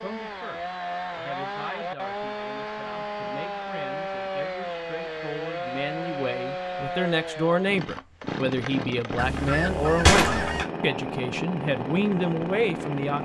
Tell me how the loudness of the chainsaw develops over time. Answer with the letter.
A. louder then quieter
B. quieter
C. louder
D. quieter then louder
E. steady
E.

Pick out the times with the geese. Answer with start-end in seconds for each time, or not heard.
9.2-10.7.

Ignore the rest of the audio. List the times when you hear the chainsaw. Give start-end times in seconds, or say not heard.
0.0-13.2.